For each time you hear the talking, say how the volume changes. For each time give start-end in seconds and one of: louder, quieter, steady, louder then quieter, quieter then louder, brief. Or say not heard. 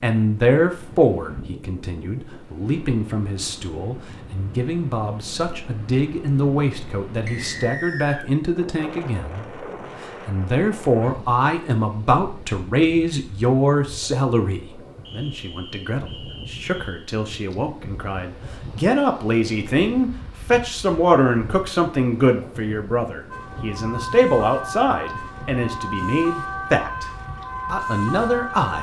0.0-27.1 steady
27.6-28.7 brief.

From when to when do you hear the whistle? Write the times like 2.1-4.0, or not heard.
7.2-8.3, 15.1-17.1.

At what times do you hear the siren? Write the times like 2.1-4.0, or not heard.
23.3-28.7.